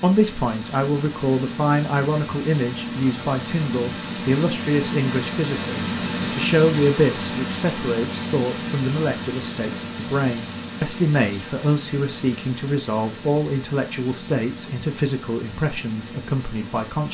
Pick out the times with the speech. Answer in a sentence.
You can hear the speech from 0.0 to 17.1 s.